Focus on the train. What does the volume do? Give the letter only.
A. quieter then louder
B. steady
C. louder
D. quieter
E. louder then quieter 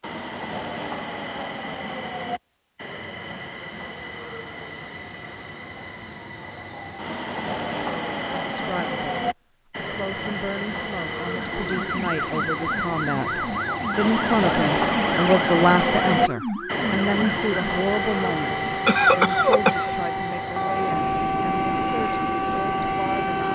E.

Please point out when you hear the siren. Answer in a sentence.
The siren can be heard from 11.3 to 23.5 s.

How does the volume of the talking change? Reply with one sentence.
The volume of the talking goes up, then down.